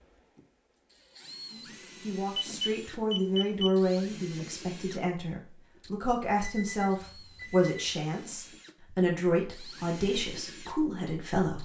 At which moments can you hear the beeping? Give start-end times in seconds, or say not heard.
2.4-3.8, 6.4-7.7.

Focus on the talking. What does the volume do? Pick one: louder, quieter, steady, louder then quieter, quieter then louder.
steady.